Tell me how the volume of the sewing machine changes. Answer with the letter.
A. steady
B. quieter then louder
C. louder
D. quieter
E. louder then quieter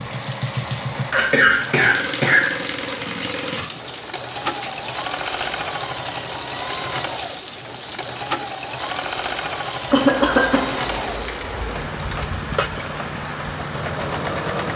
A.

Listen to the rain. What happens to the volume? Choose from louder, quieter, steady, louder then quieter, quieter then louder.
steady.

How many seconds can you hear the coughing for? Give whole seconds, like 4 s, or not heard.
2 s.